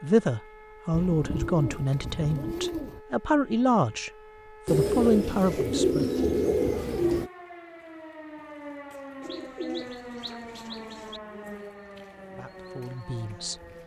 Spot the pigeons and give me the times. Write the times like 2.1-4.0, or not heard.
0.9-3.0, 4.7-7.3, 9.2-11.2.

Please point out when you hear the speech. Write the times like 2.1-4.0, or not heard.
0.0-6.0, 12.3-13.8.